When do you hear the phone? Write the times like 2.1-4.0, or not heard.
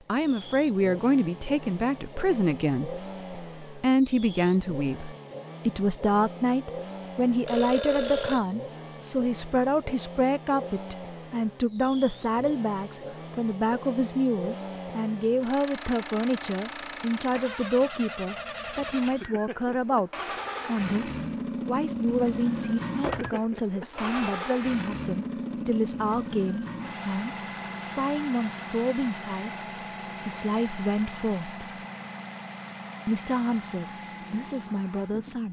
7.5-8.4, 23.0-24.4.